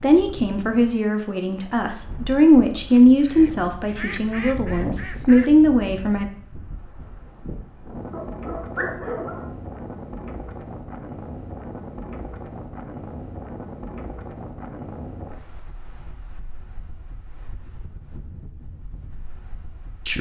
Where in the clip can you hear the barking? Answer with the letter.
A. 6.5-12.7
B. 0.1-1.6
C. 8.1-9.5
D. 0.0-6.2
C.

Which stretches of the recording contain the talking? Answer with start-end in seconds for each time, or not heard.
0.0-6.2.